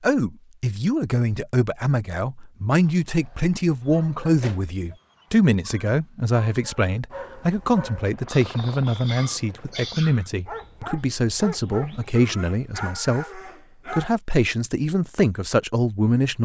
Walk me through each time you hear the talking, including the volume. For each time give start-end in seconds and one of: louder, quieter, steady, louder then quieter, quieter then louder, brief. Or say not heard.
0.0-16.4 steady.